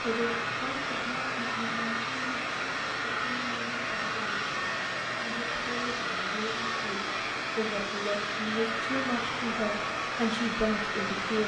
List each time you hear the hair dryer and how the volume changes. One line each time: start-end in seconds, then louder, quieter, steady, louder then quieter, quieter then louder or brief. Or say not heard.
0.0-11.4 steady.